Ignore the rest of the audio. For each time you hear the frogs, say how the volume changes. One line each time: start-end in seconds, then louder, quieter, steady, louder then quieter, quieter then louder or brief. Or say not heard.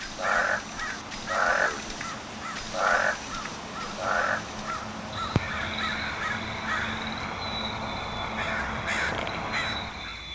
0.0-10.3 quieter.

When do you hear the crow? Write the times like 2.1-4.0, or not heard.
0.0-10.2.